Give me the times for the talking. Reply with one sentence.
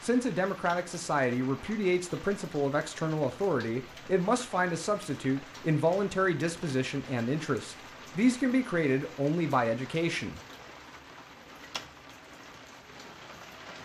The talking can be heard from 0.0 to 10.4 s.